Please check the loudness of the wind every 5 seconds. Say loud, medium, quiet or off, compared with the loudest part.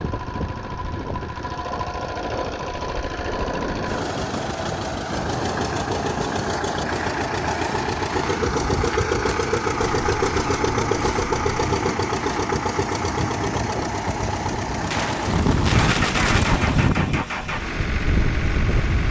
medium, medium, medium, loud.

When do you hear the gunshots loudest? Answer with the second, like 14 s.
16 s.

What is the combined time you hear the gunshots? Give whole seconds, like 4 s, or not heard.
2 s.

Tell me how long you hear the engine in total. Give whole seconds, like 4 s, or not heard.
19 s.